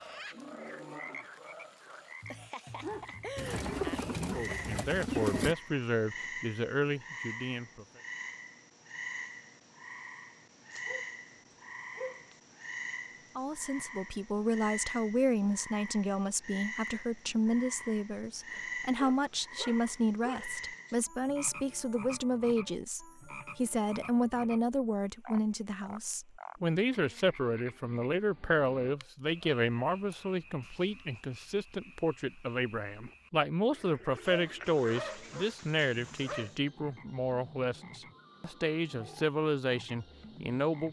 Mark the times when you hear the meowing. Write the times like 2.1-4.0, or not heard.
not heard.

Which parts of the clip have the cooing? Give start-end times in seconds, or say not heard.
3.4-5.5, 33.7-35.5.